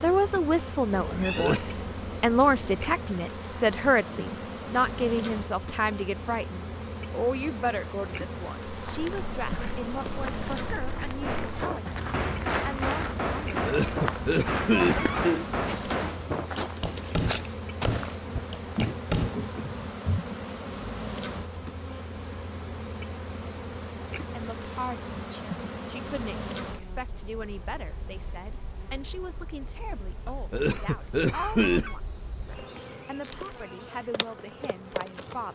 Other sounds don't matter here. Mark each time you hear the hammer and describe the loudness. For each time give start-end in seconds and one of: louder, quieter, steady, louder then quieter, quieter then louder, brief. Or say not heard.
11.2-19.4 steady.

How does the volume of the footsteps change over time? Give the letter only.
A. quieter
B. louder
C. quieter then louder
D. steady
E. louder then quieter
B.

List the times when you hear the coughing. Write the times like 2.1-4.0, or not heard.
1.1-1.6, 13.6-15.4, 30.2-31.9.